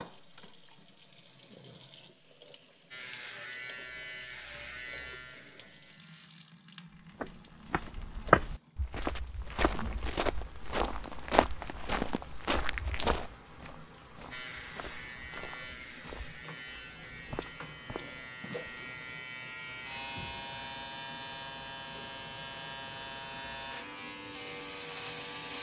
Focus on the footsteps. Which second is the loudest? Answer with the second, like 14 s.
8 s.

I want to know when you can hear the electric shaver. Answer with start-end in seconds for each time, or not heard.
2.9-6.3, 14.3-25.5.